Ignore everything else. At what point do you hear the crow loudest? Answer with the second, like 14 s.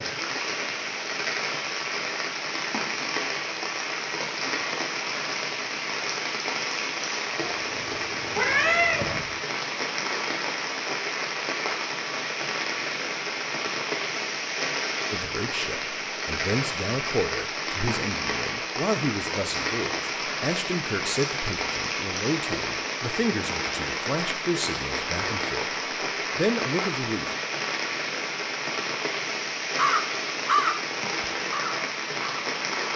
31 s.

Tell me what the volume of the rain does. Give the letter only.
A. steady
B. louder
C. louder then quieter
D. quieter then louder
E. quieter
A.